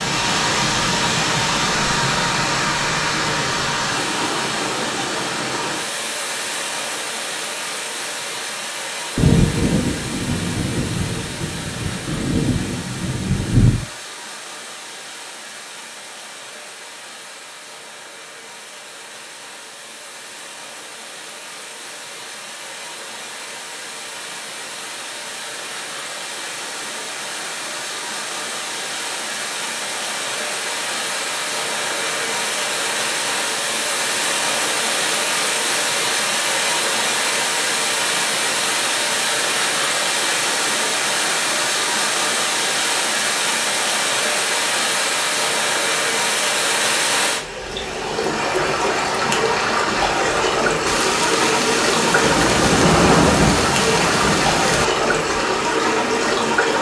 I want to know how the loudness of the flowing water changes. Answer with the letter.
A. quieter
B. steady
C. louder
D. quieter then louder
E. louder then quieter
D.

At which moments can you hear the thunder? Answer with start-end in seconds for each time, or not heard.
9.2-13.8, 50.9-54.9.